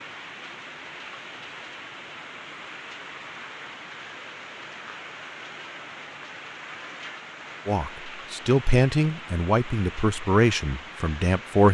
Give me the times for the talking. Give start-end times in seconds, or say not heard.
7.7-11.6.